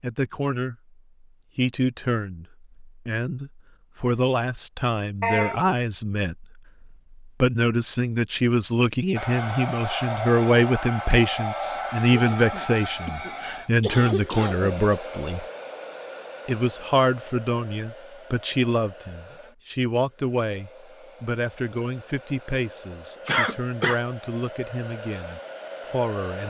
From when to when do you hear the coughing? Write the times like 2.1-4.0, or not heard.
5.2-5.8, 12.3-14.7, 23.2-24.0.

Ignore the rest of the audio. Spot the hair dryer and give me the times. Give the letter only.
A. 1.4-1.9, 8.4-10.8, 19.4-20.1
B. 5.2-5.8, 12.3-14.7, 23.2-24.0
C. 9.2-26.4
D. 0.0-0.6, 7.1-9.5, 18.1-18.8
C.